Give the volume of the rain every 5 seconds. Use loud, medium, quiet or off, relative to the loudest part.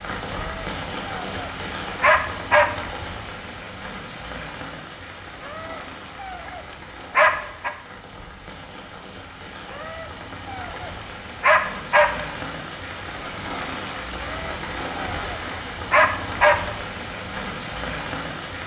loud, medium, loud, loud.